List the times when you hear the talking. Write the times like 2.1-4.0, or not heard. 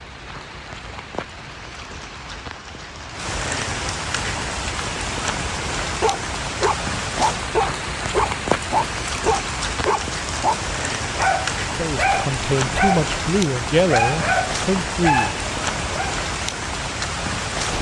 11.8-15.3.